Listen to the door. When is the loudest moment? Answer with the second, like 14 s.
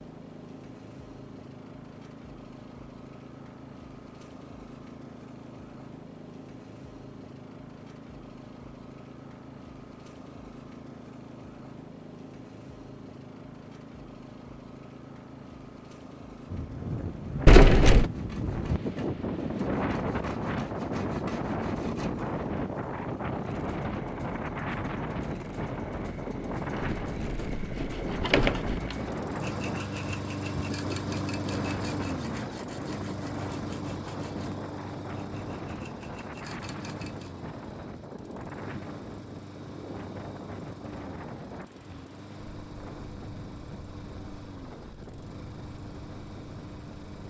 18 s.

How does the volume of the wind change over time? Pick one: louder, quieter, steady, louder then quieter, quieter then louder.
quieter.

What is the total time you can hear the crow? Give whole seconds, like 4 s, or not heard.
not heard.